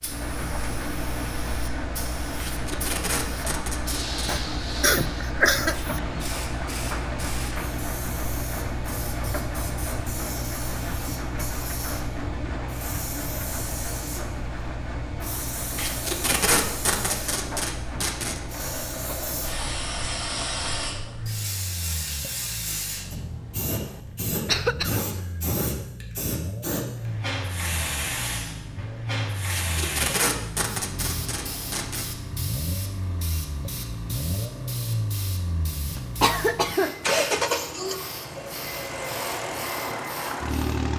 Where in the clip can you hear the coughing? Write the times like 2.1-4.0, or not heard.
4.2-6.0, 24.4-25.0, 36.0-37.1.